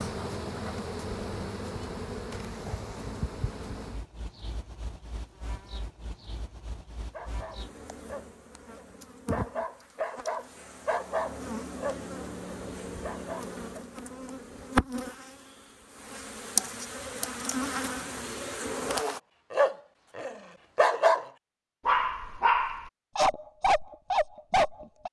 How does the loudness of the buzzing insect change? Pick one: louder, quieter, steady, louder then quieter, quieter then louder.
quieter then louder.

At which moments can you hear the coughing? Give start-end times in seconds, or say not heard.
not heard.